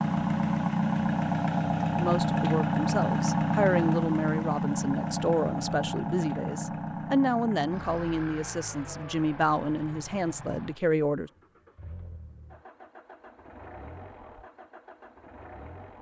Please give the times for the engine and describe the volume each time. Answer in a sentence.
The engine can be heard from 0.0 to 15.9 s, getting quieter.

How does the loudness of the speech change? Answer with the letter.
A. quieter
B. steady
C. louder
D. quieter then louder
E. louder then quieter
B.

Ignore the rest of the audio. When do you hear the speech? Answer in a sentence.
The speech can be heard from 1.9 to 11.3 s.